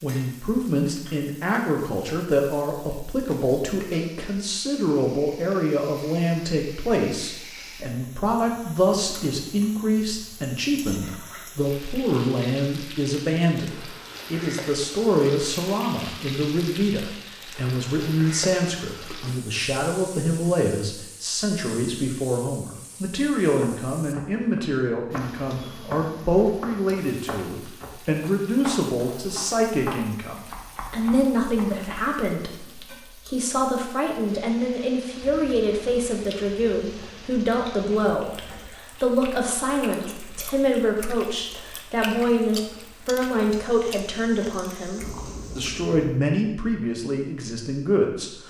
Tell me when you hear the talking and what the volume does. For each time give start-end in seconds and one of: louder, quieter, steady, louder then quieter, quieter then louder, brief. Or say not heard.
0.0-48.4 steady.